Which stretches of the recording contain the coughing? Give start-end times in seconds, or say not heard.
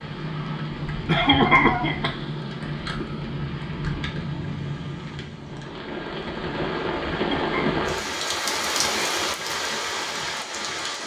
1.1-2.1, 7.1-7.7.